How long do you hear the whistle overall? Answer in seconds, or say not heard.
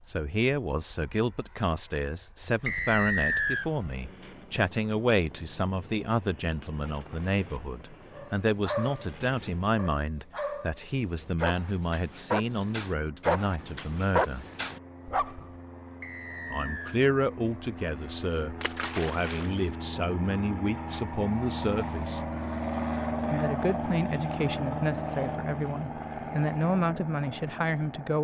2 s.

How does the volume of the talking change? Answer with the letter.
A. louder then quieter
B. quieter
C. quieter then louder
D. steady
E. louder
D.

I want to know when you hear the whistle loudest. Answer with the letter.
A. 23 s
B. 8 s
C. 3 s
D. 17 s
C.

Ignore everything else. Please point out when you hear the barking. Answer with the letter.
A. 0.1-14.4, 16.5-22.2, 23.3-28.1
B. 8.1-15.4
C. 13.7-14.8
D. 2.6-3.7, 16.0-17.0
B.